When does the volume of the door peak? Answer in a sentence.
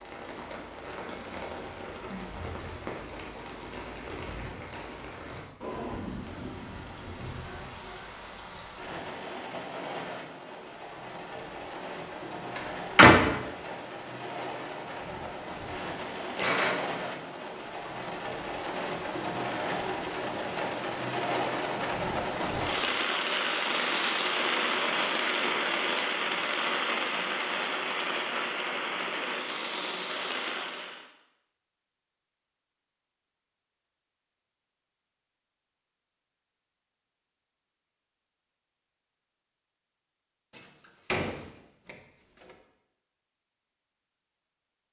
The loudest moment of the door is at 13 seconds.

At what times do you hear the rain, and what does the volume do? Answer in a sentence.
The rain can be heard from 0.0 to 31.1 s, getting louder.